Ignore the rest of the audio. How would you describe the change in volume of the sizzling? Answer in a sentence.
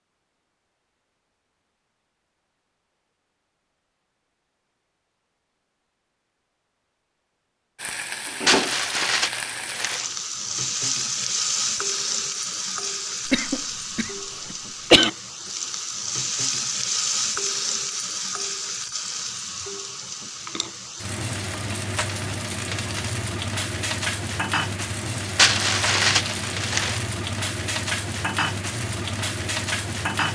The volume of the sizzling stays about the same.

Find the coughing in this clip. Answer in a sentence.
You can hear the coughing from 13.2 to 15.1 s.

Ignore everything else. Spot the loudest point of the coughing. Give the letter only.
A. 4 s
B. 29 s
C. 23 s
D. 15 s
D.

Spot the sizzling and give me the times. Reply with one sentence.
You can hear the sizzling from 7.8 to 30.2 s.